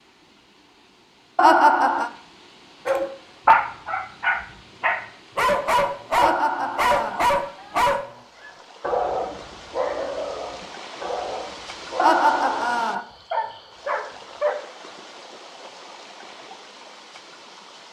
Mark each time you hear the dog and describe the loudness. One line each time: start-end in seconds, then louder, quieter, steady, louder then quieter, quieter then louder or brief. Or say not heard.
2.9-14.6 quieter.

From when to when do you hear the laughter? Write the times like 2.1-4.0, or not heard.
1.4-2.1, 6.2-7.2, 11.9-13.0.